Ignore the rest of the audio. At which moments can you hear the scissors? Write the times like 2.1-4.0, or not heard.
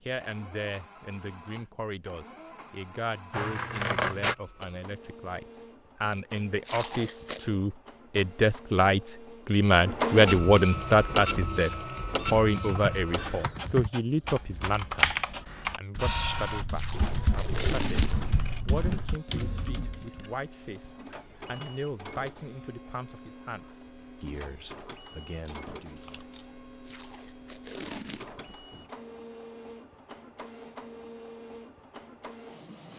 3.3-4.3, 17.6-18.6, 25.4-26.6.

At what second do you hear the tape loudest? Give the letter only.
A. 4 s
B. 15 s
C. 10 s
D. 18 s
D.